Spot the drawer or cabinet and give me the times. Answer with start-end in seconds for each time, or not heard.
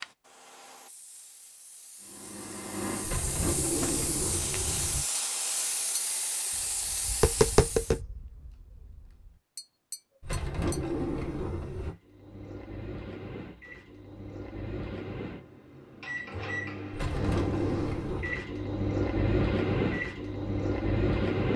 3.0-5.0, 10.2-11.9, 16.9-18.4.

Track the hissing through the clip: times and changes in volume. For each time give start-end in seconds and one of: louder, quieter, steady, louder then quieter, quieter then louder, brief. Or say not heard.
0.0-8.0 louder.